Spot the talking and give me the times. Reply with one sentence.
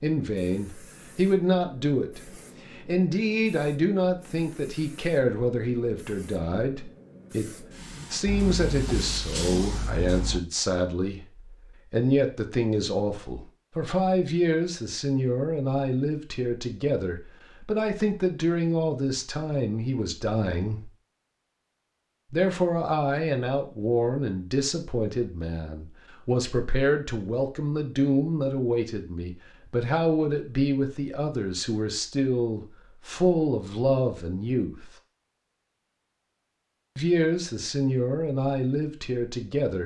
You can hear the talking from 0.0 to 11.2 s, from 11.9 to 20.9 s, from 22.3 to 34.9 s and from 37.0 to 39.8 s.